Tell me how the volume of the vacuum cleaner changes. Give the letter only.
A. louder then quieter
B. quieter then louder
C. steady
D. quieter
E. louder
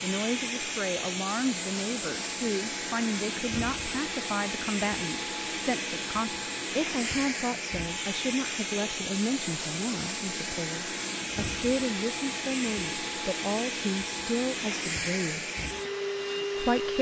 C.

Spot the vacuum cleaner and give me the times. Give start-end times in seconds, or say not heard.
0.0-16.9.